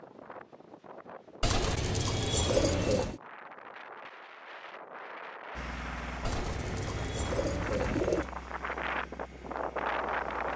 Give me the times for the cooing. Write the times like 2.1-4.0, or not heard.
1.4-3.2, 6.2-8.3.